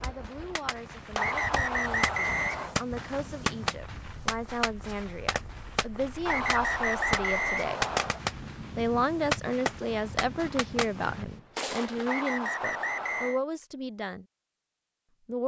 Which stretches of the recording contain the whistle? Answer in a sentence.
You can hear the whistle from 1.1 to 2.8 s, from 6.2 to 8.2 s and from 12.1 to 13.4 s.